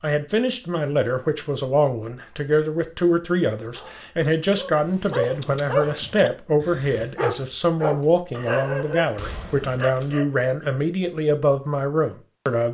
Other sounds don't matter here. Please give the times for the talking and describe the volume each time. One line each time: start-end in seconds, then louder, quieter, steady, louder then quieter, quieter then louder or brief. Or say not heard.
0.0-12.6 steady.